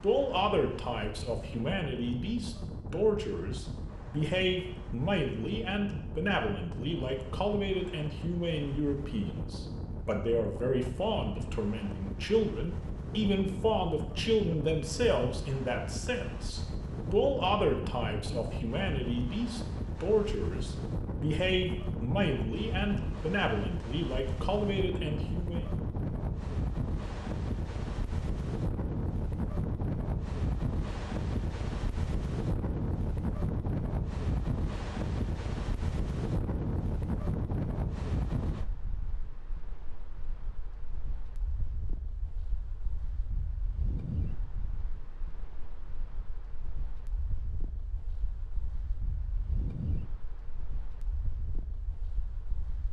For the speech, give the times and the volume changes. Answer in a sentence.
The speech can be heard from 0.0 to 25.6 s, at a steady volume.